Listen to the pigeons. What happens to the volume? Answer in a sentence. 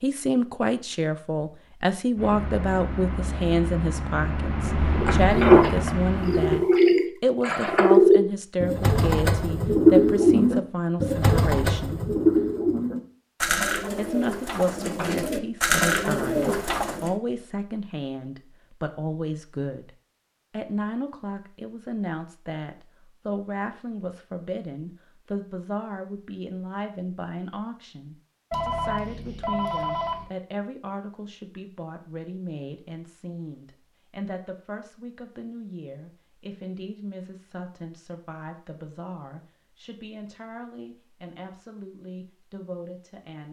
The volume of the pigeons goes down.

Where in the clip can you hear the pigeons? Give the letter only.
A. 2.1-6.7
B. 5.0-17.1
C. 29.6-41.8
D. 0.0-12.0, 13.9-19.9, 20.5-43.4
B.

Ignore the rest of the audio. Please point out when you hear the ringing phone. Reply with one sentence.
The ringing phone can be heard from 28.5 to 30.2 s.